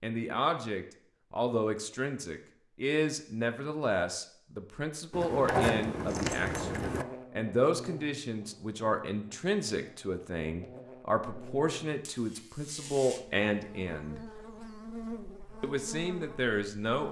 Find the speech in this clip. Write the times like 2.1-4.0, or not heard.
0.0-14.2, 15.6-17.0.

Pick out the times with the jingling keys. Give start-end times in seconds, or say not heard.
5.1-7.0.